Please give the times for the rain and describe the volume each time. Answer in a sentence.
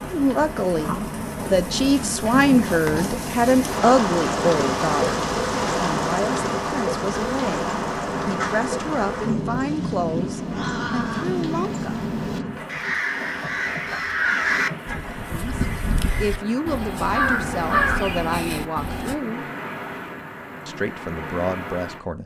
You can hear the rain from 0.0 to 22.2 s, getting quieter.